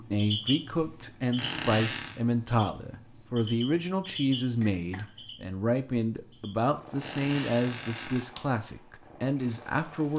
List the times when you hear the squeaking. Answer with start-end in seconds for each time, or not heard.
1.4-2.2, 7.0-8.2.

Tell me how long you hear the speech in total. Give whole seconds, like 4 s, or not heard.
10 s.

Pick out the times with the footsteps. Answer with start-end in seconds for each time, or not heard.
not heard.